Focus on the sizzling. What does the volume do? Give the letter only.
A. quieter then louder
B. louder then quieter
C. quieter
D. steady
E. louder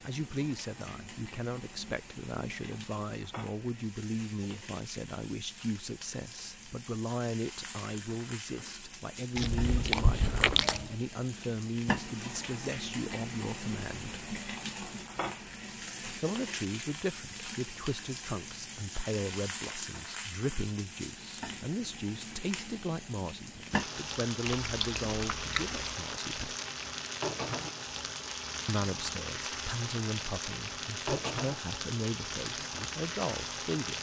E.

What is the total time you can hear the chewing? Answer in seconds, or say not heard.
3 s.